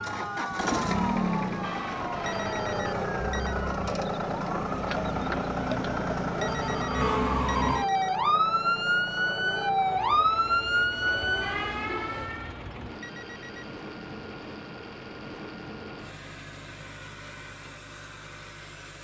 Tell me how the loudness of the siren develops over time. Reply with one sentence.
The volume of the siren goes up.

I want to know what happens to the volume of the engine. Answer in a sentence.
The volume of the engine goes down.